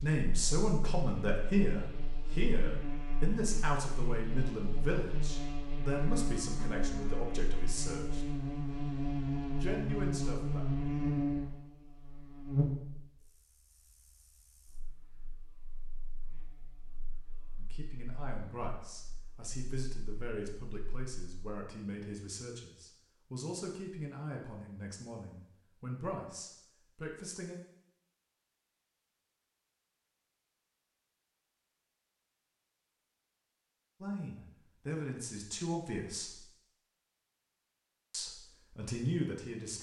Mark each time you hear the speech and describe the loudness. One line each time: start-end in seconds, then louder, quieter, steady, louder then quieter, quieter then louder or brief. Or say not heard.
0.0-8.2 quieter
9.6-10.7 brief
17.6-27.6 steady
34.0-36.4 brief
38.1-39.7 brief.